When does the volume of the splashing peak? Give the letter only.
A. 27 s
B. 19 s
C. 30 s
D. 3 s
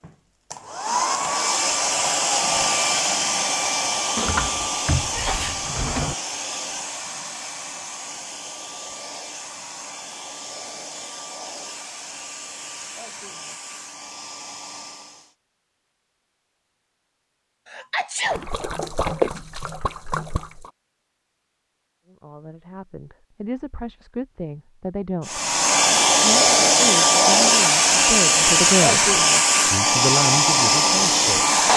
B.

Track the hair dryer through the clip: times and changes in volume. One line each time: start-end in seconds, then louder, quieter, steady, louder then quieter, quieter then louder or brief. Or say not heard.
0.0-15.3 quieter
25.2-31.7 steady.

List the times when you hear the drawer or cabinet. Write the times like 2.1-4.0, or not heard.
4.2-6.2.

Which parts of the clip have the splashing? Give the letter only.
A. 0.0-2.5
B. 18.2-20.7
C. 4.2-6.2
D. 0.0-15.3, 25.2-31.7
B.